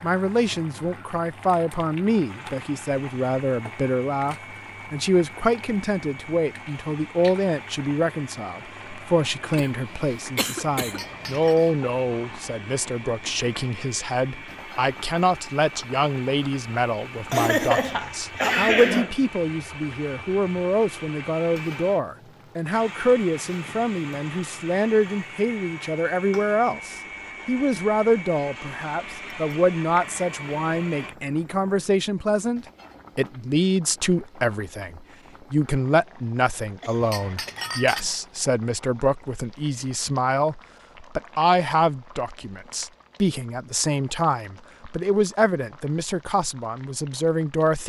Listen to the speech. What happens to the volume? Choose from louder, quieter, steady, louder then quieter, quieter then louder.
steady.